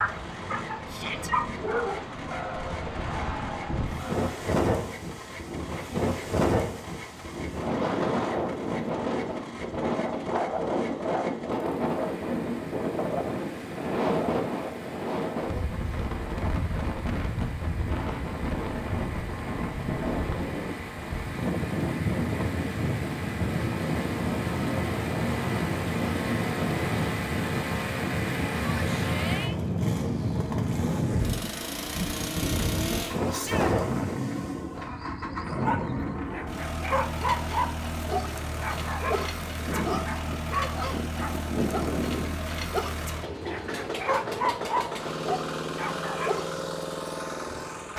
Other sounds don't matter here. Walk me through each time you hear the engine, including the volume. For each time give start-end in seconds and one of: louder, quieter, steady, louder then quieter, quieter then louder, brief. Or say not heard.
0.0-47.9 louder.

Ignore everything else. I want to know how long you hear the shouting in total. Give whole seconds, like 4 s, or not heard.
2 s.